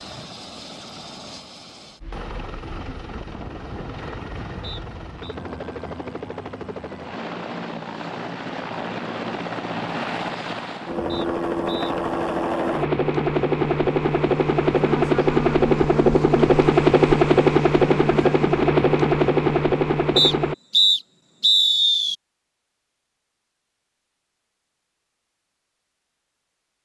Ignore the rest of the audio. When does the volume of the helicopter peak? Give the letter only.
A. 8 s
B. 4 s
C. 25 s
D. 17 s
D.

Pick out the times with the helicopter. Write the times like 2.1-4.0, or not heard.
0.0-20.6.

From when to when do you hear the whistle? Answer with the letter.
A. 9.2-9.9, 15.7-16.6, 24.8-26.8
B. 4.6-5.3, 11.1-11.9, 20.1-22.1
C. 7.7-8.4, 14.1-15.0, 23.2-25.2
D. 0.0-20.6
B.